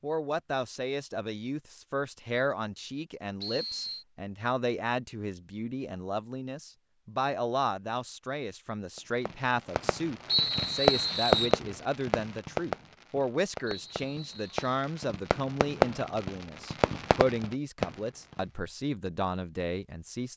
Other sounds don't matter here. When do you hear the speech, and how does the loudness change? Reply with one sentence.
You can hear the speech from 0.0 to 20.3 s, at a steady volume.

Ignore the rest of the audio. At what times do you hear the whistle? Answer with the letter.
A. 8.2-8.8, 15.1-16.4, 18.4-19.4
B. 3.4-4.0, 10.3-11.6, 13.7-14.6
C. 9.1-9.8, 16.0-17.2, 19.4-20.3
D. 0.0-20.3
B.